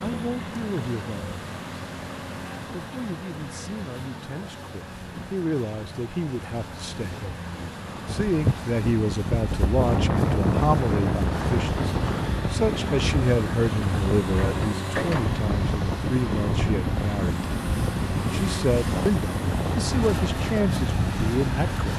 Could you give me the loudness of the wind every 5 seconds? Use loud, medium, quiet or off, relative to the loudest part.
off, loud, loud, loud, medium.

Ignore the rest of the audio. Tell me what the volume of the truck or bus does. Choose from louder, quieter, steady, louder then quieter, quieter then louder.
louder.